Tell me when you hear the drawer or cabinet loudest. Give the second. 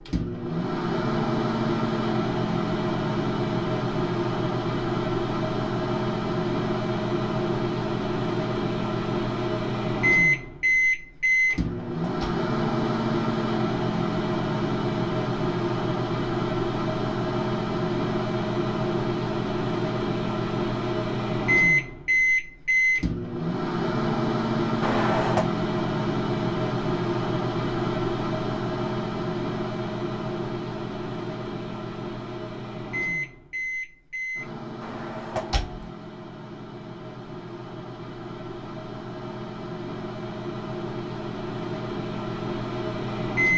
25 s.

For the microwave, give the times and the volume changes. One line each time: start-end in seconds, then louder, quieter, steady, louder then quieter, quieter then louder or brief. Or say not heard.
0.1-43.5 quieter.